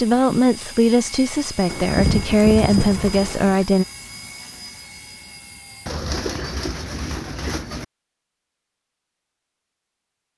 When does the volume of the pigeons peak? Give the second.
2 s.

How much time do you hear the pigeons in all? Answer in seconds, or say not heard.
4 s.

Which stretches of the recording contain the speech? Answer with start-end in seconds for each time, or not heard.
0.0-3.9.